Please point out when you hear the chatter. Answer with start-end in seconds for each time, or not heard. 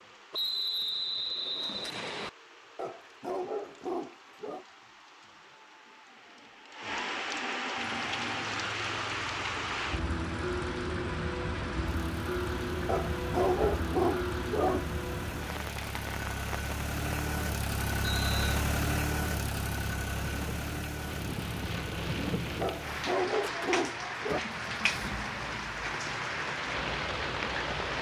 not heard.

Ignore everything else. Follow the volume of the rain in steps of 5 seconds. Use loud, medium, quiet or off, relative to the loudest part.
quiet, loud, loud, medium, loud, loud.